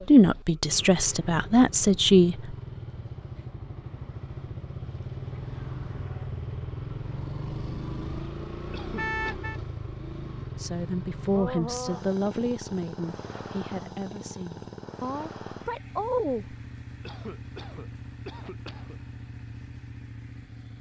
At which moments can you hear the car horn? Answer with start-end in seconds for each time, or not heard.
8.9-9.6.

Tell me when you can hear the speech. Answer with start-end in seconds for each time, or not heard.
0.1-2.5, 10.6-16.6.